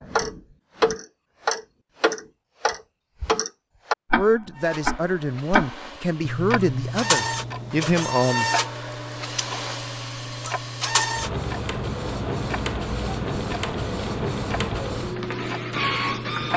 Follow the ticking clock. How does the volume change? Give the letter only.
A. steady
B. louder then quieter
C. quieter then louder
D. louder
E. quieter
E.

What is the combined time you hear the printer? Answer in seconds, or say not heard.
12 s.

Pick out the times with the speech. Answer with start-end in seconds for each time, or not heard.
4.2-8.5.